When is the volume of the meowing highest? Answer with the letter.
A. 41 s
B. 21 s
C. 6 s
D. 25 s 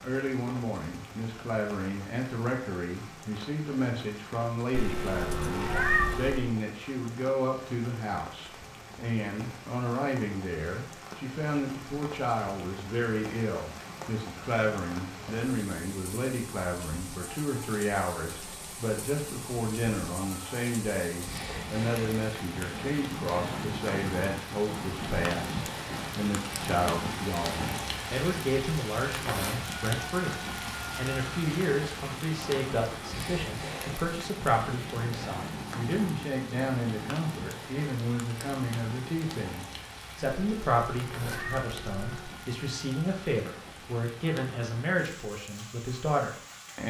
C.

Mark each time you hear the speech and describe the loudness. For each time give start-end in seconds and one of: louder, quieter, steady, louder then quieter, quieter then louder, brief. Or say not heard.
0.0-46.8 steady.